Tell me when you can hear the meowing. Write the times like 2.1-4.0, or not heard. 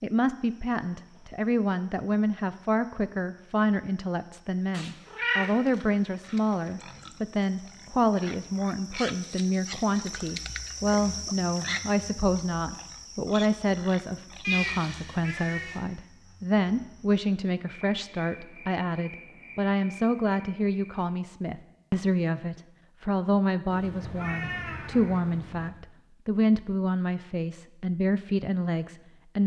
4.7-6.7, 14.4-15.8, 23.7-25.7.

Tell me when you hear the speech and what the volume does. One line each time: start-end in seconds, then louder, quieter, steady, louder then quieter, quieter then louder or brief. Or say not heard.
0.0-29.4 steady.